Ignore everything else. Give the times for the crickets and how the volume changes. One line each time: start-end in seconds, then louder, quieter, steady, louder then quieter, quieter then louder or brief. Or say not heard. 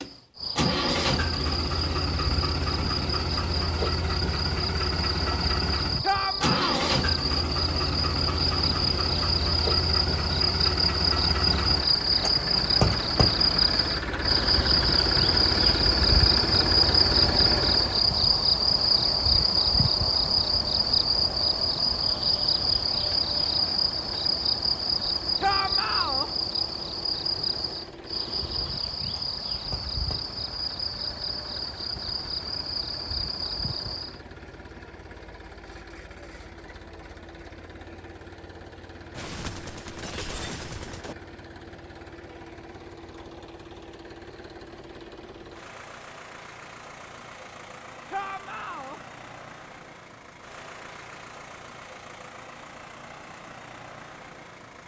0.0-34.2 louder then quieter.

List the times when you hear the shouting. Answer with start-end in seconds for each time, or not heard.
6.0-6.9, 25.4-26.3, 48.1-49.0.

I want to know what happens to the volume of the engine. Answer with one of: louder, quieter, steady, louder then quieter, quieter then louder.
quieter.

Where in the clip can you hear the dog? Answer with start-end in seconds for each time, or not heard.
not heard.